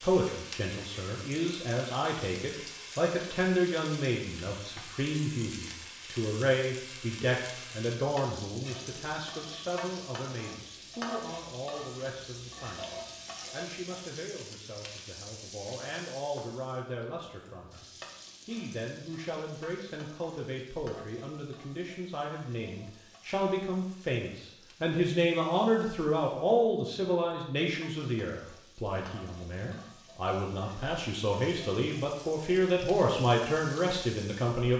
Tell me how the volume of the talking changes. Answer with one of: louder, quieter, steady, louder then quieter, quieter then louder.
quieter then louder.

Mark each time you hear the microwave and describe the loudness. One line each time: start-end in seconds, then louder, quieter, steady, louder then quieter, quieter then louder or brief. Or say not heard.
not heard.